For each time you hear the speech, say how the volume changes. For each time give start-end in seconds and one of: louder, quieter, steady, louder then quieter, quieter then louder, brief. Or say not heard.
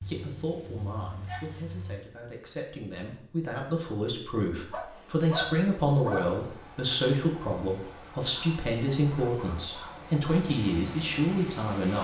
0.1-11.9 louder.